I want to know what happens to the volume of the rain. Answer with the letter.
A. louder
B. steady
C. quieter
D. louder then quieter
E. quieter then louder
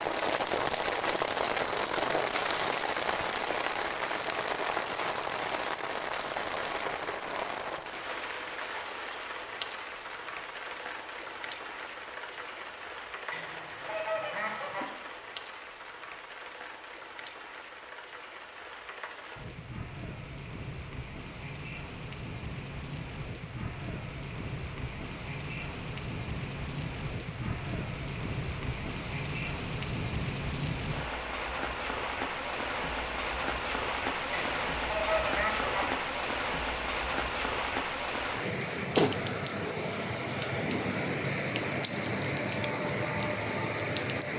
E.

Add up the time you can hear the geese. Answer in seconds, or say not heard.
3 s.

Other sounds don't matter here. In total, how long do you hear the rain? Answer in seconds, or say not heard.
44 s.